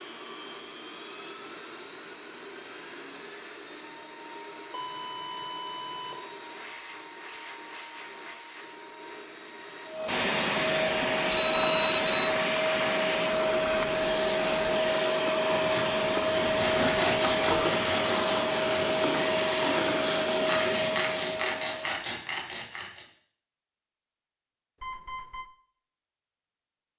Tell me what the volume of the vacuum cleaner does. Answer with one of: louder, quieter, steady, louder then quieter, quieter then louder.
louder.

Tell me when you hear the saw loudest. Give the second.
17 s.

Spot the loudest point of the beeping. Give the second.
12 s.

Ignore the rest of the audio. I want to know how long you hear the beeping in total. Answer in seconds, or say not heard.
3 s.